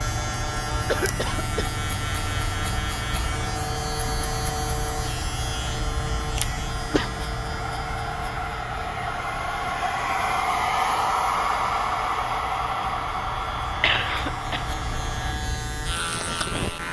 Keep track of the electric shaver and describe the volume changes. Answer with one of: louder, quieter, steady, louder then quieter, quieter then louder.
quieter then louder.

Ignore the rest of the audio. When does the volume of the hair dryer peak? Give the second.
11 s.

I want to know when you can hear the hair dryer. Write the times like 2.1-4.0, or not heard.
0.2-15.4.